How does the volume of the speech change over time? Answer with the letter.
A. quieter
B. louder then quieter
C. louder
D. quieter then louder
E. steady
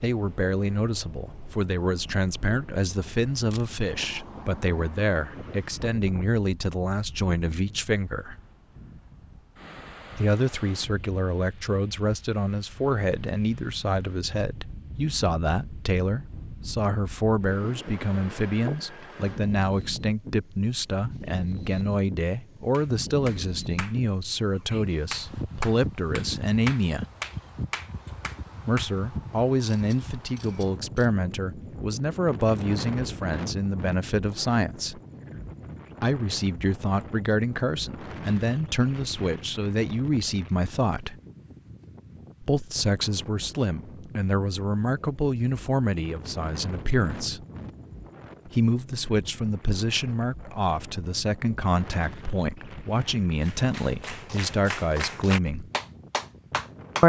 E.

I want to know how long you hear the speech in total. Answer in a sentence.
You can hear the speech for 49 seconds altogether.